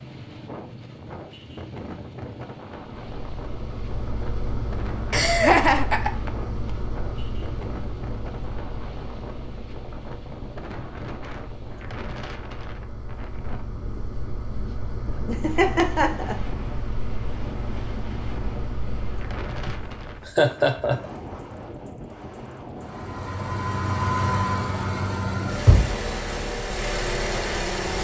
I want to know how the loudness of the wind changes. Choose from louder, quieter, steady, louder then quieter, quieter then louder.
steady.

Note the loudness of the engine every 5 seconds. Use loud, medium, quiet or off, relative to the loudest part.
medium, medium, quiet, medium, loud, loud.